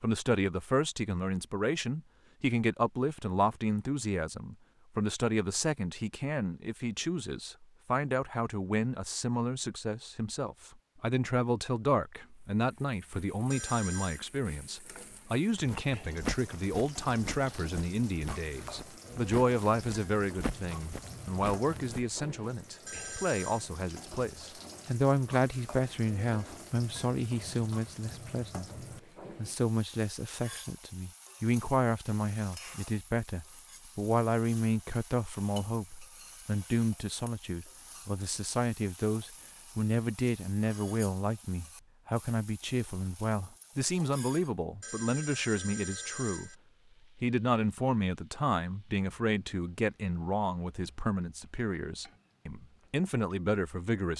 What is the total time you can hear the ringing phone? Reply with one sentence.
The ringing phone can be heard for 3 seconds in total.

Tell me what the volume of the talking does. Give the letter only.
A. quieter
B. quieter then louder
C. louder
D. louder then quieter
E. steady
E.